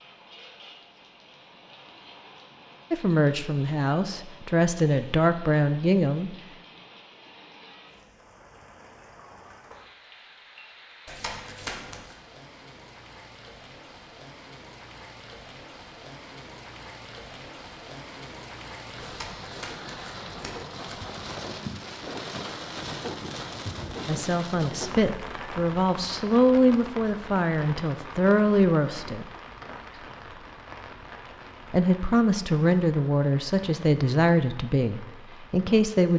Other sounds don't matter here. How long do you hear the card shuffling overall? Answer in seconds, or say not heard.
3 s.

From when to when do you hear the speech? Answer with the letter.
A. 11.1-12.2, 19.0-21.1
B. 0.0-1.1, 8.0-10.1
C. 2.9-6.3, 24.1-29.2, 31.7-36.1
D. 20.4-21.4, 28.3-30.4
C.